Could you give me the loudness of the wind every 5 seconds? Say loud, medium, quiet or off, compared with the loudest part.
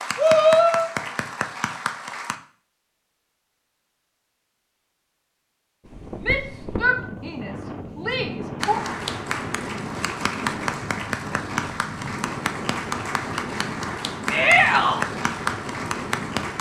off, loud, loud, loud.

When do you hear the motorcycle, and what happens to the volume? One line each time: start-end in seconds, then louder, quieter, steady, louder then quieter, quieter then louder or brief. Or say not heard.
not heard.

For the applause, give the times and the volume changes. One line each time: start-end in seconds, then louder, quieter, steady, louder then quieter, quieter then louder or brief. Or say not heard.
0.0-2.4 brief
8.6-16.5 steady.